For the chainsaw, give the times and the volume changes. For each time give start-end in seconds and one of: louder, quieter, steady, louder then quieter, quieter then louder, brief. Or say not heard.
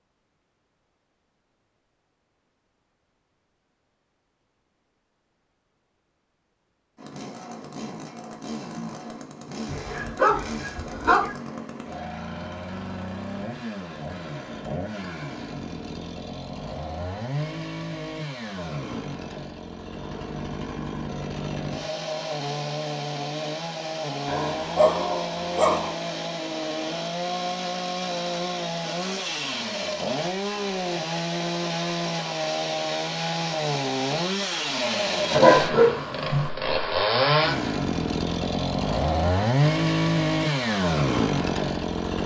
7.0-42.2 louder.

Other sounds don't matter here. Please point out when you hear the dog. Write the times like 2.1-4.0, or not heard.
9.7-11.3, 24.2-25.9, 35.3-36.5.